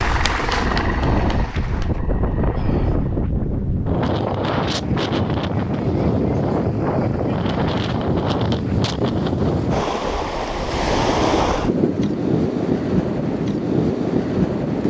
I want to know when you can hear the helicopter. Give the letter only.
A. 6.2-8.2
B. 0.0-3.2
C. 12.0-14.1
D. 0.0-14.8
B.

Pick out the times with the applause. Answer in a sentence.
The applause can be heard from 0.0 to 2.0 s.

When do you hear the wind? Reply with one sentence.
You can hear the wind from 0.0 to 14.8 s.